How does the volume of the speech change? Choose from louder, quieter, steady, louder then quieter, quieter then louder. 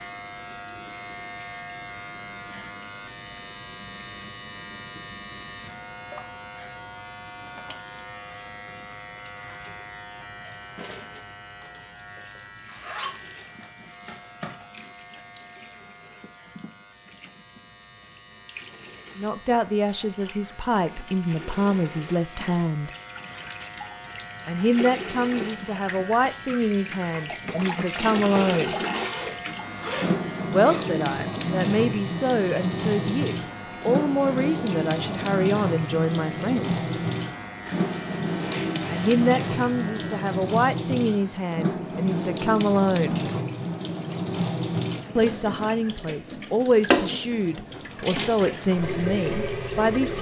steady.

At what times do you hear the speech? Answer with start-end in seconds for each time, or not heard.
19.1-22.9, 24.4-28.8, 30.5-37.0, 38.9-43.2, 45.1-50.1.